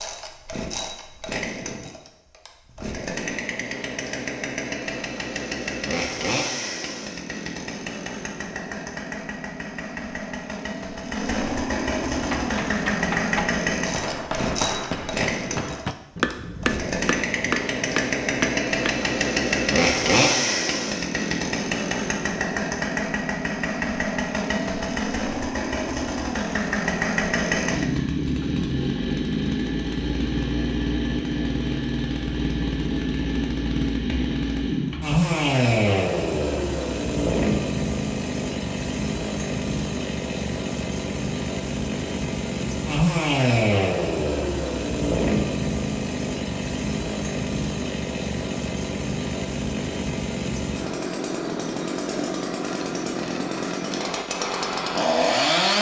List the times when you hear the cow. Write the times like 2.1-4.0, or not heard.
not heard.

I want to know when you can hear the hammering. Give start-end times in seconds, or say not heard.
12.1-19.1.